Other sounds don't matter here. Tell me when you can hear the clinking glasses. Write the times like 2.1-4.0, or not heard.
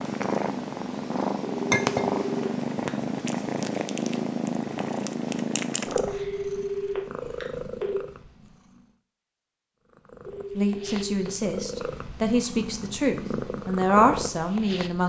1.7-2.1.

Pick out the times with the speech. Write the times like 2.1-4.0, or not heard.
10.6-15.0.